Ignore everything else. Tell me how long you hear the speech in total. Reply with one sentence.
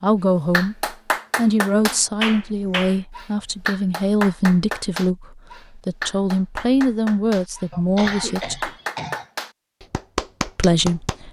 The speech can be heard for 9 seconds in total.